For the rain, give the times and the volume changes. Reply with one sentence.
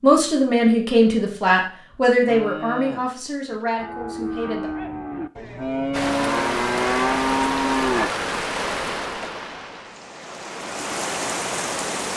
The rain can be heard from 5.9 to 12.1 s, getting quieter then louder.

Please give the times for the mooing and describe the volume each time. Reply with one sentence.
The mooing can be heard from 2.2 to 8.1 s, getting louder.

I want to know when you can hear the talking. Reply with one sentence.
You can hear the talking from 0.0 to 4.7 s.